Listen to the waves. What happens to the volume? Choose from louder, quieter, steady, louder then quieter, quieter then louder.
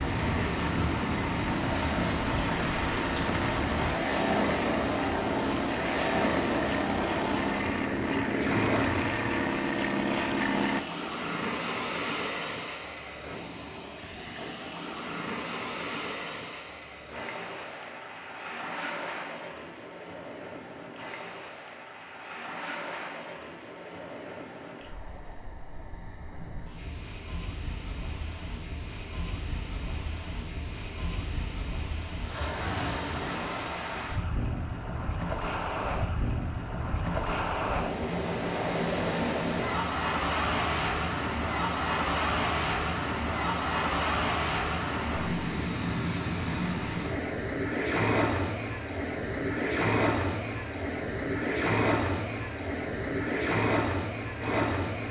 quieter then louder.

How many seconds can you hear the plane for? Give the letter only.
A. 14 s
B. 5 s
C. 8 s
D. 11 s
D.